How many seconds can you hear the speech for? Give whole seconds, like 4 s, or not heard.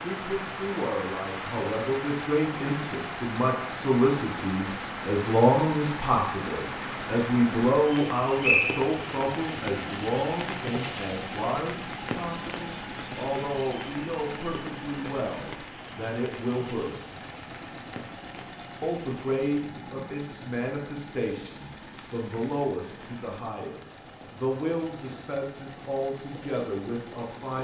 26 s.